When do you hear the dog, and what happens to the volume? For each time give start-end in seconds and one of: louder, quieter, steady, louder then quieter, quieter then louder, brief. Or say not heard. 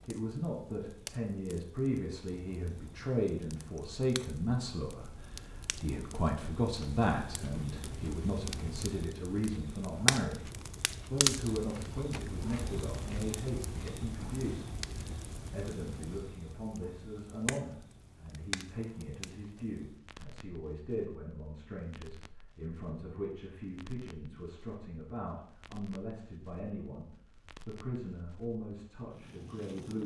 not heard.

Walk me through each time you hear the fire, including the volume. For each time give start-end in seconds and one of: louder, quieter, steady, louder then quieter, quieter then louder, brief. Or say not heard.
0.0-30.0 louder then quieter.